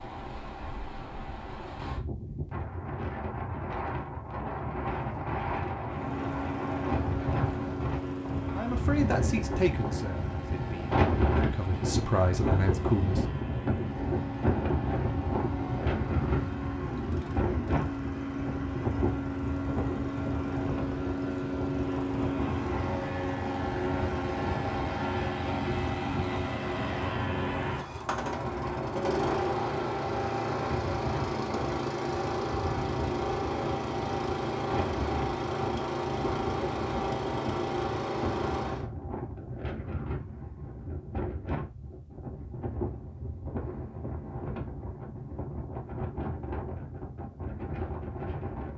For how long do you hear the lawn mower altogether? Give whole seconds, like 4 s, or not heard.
33 s.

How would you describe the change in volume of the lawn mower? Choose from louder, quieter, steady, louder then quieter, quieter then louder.
louder.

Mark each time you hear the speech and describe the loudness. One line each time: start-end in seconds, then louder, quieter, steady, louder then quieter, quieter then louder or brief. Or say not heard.
8.6-13.2 quieter then louder.